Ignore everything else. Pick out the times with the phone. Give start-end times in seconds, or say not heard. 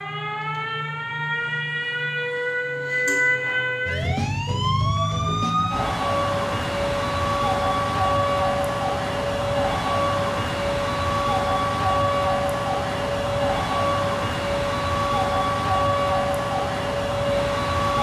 not heard.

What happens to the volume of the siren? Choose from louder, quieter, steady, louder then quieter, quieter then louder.
steady.